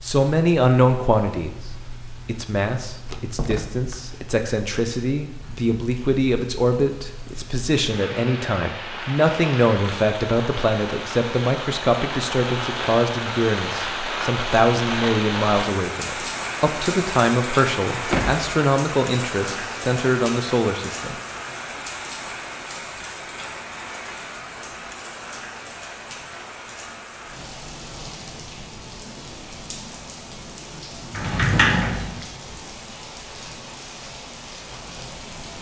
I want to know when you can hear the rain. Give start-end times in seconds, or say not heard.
0.0-35.5.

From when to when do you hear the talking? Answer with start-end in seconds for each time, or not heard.
0.0-1.6, 2.2-21.1.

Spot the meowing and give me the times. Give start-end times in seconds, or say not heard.
not heard.